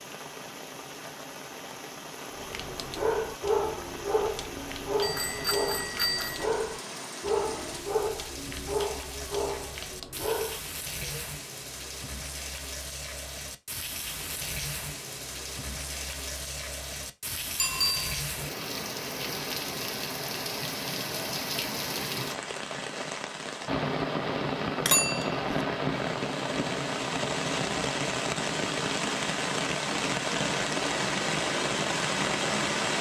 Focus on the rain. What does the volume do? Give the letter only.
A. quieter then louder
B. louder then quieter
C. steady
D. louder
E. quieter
D.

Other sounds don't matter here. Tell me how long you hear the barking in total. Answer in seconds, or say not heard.
9 s.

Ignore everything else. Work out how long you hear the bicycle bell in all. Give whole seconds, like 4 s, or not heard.
3 s.